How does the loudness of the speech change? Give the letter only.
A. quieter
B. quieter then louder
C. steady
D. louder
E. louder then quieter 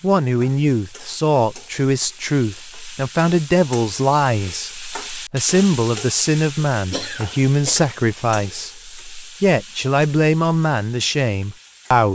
C.